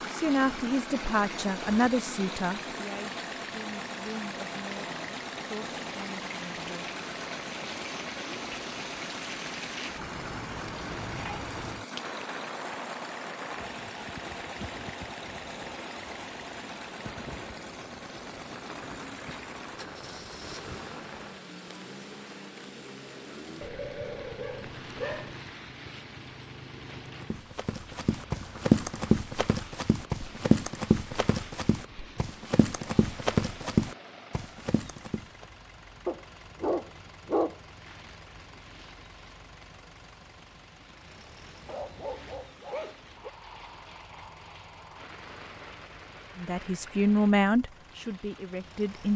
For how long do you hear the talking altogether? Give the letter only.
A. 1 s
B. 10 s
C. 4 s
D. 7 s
B.